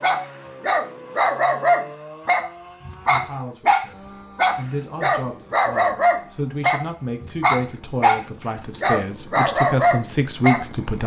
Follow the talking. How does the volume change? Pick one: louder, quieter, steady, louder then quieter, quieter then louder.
louder.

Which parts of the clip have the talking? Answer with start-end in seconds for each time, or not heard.
3.0-11.0.